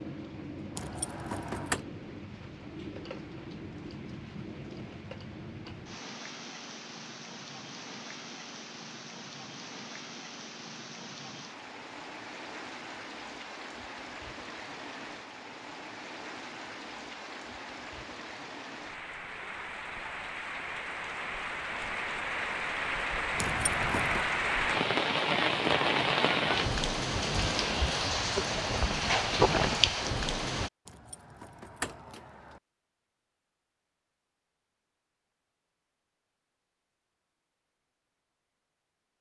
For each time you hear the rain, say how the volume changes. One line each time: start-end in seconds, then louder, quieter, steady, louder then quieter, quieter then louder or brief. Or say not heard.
0.0-30.7 louder.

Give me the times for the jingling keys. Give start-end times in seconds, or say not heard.
0.8-1.9, 23.4-24.3, 30.9-32.6.